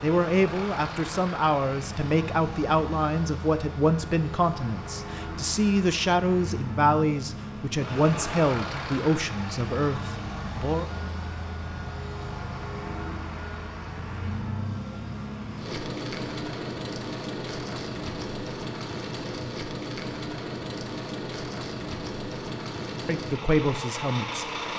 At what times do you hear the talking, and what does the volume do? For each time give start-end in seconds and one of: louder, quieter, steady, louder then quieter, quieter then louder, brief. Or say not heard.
0.0-10.8 steady
23.1-24.6 brief.